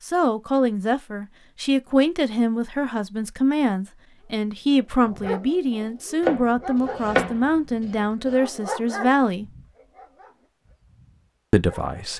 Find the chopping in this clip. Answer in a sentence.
The chopping can be heard from 6.2 to 8.3 s.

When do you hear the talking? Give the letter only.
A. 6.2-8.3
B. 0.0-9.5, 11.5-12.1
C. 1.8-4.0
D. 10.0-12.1
B.